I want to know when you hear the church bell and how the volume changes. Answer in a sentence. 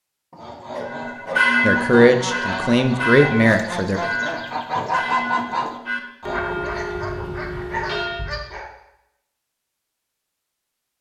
You can hear the church bell from 0.8 to 8.3 s, getting quieter.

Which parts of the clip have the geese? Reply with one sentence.
You can hear the geese from 0.3 to 6.5 s.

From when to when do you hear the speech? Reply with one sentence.
You can hear the speech from 1.6 to 4.0 s.